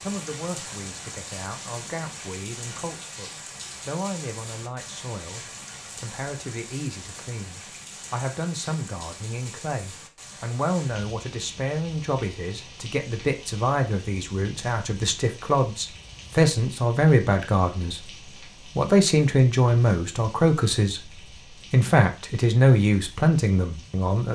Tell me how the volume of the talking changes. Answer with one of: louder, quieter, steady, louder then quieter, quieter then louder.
louder.